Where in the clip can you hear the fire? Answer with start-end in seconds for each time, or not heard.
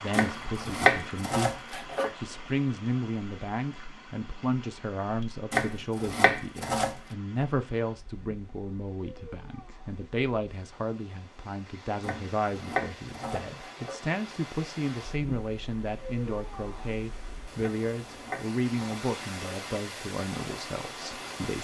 not heard.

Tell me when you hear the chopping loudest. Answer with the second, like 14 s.
1 s.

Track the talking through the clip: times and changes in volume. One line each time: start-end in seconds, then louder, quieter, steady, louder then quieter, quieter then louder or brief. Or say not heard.
0.0-21.6 steady.